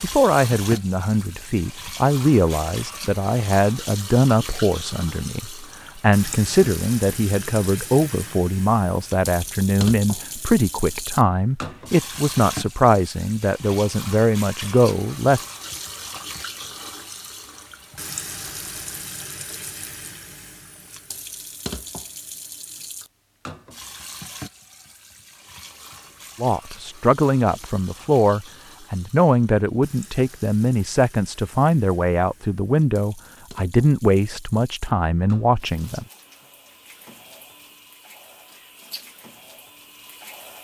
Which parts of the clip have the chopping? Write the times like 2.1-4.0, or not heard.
not heard.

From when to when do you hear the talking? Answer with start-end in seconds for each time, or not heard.
0.0-15.4, 26.4-36.0.